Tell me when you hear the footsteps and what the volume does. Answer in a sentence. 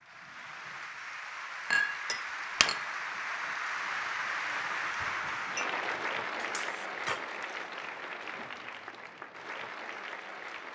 The footsteps can't be heard in this clip.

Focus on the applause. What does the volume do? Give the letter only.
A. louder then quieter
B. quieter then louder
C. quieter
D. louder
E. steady
A.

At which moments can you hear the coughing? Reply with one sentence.
You can hear the coughing from 6.3 to 7.2 s.